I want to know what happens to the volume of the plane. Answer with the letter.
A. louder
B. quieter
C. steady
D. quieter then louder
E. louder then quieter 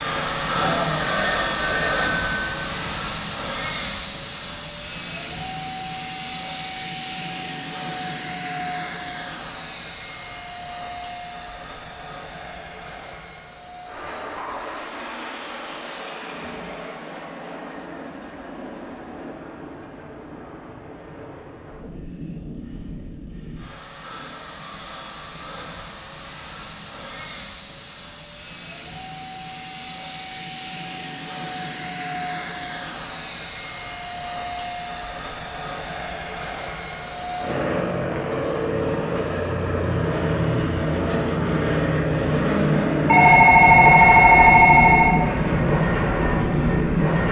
D.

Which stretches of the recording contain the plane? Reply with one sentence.
You can hear the plane from 0.0 to 47.2 s.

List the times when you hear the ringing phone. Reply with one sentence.
You can hear the ringing phone from 0.6 to 3.0 s and from 43.0 to 45.1 s.